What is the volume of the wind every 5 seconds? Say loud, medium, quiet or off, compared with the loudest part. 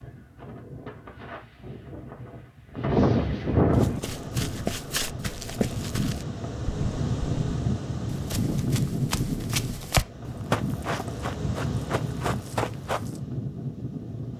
loud, loud, medium.